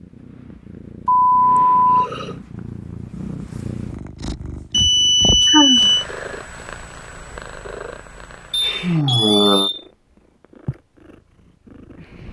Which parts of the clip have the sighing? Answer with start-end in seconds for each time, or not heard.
1.6-2.4, 5.5-5.9, 8.8-9.7.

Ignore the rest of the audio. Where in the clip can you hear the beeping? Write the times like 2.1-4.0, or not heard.
1.1-2.1, 4.7-6.0, 8.5-9.8.